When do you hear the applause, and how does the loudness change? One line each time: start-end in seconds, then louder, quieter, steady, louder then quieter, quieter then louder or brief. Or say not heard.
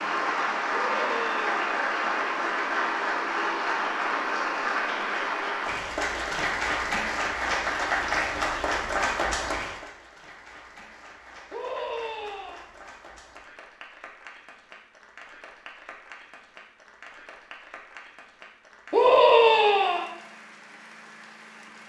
0.0-21.8 quieter.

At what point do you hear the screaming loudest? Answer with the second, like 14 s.
19 s.